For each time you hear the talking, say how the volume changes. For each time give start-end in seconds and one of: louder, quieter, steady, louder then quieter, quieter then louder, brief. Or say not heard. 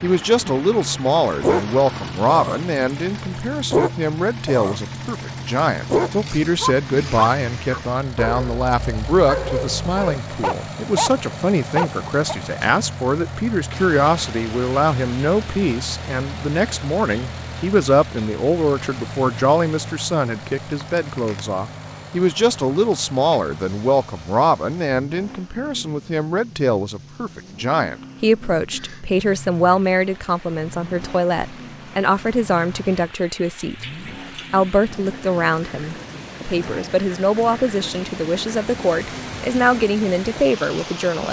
0.0-41.2 steady.